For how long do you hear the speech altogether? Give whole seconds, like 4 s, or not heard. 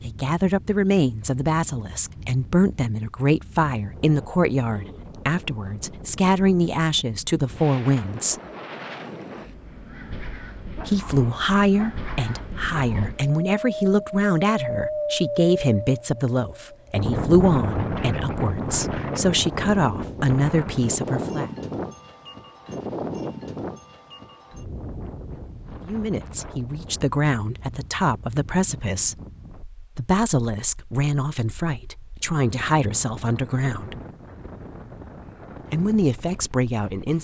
28 s.